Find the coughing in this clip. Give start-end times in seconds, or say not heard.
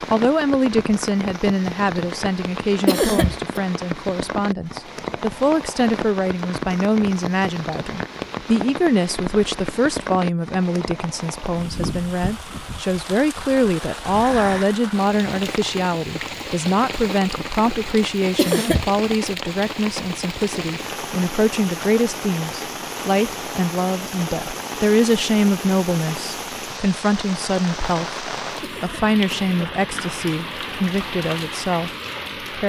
2.9-3.5, 18.4-18.9, 28.6-29.6.